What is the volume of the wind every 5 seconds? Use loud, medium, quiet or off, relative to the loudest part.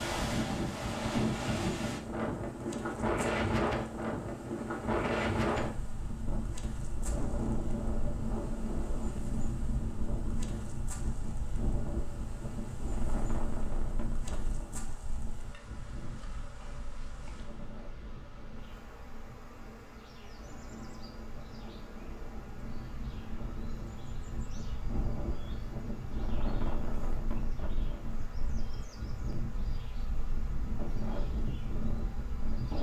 loud, loud, medium, quiet, quiet, medium, medium.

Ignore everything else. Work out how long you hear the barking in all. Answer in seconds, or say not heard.
not heard.